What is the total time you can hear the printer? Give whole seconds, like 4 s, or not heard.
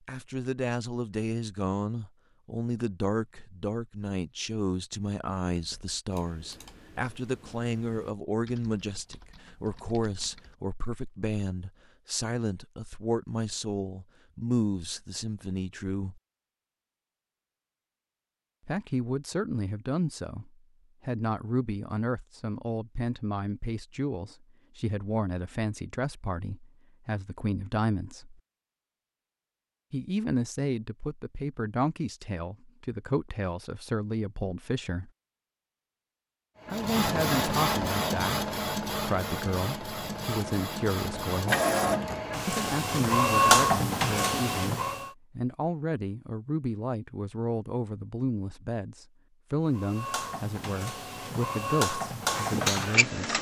12 s.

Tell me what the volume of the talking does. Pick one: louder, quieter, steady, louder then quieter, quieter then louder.
steady.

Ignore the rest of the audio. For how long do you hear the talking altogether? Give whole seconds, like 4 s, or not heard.
47 s.